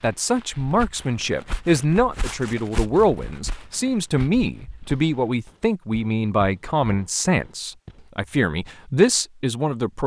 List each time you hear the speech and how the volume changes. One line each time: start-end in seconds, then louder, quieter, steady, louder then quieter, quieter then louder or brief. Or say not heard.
0.0-10.0 steady.